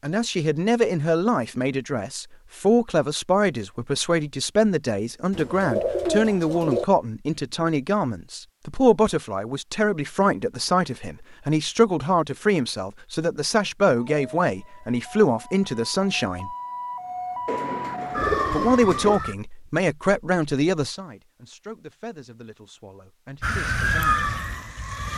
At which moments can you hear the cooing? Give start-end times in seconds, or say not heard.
5.3-6.8, 17.4-19.2.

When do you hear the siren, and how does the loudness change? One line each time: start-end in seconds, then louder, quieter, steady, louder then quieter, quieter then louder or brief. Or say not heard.
14.1-19.4 louder
23.4-25.1 brief.